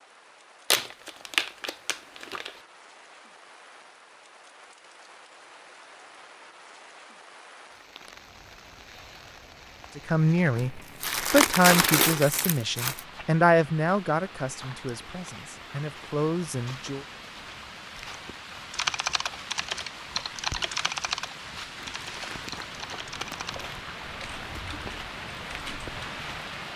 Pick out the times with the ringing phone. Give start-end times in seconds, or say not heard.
not heard.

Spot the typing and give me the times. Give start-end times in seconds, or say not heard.
18.7-26.1.